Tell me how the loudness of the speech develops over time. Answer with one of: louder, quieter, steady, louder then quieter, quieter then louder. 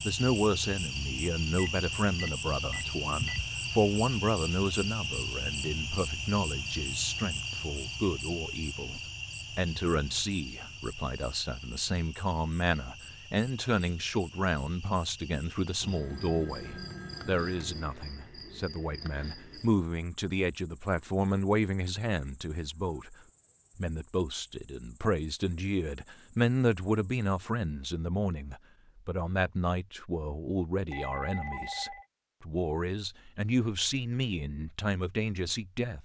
steady.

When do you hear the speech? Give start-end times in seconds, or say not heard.
0.0-23.1, 23.8-36.0.